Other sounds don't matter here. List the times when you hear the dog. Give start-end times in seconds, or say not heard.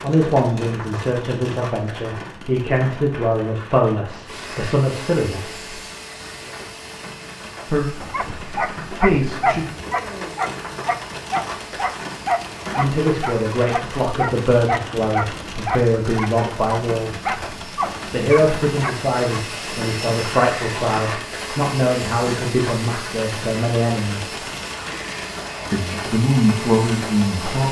8.0-19.4.